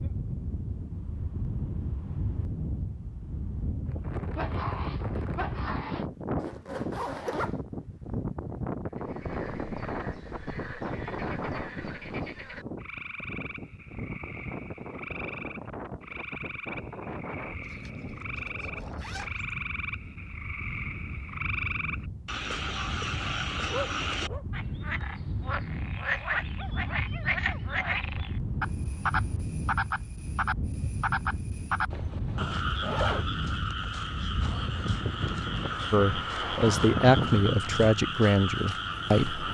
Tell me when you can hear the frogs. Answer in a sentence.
You can hear the frogs from 8.9 to 39.4 s.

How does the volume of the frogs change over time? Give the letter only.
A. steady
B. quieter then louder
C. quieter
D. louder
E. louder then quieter
D.